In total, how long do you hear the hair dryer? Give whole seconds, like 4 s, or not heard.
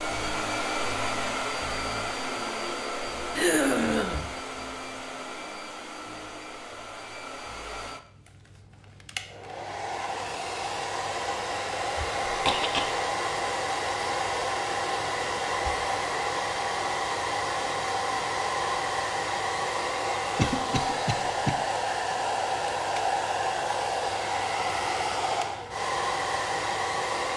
27 s.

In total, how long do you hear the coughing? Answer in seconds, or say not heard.
3 s.